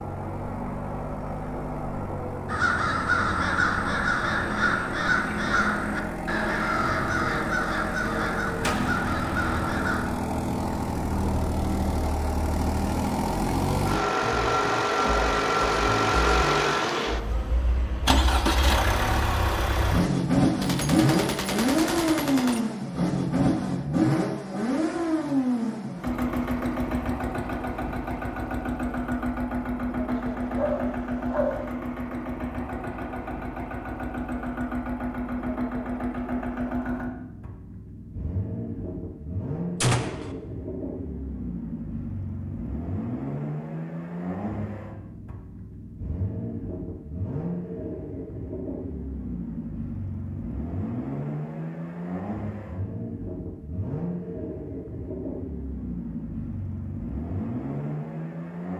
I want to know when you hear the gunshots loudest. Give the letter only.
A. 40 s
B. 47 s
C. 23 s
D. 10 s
A.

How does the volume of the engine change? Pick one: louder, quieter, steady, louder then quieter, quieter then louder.
louder then quieter.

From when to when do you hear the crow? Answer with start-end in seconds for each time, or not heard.
2.5-10.1.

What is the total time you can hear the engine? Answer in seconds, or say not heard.
59 s.